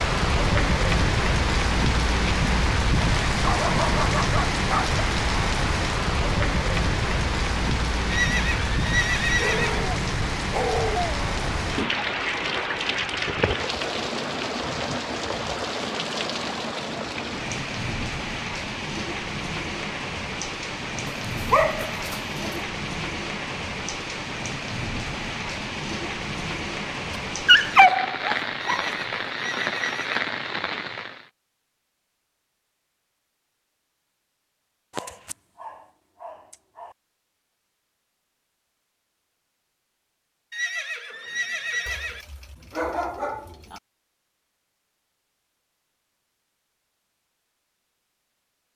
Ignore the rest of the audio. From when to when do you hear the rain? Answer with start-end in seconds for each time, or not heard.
0.0-31.3.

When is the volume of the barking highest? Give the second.
28 s.